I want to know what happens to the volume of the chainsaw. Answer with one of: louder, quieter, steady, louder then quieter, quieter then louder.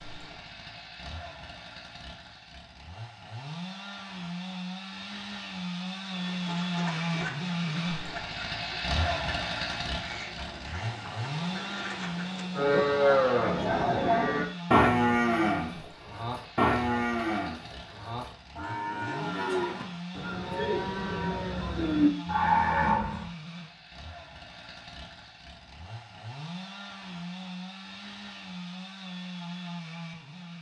louder then quieter.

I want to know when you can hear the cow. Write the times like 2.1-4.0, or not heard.
12.6-23.2.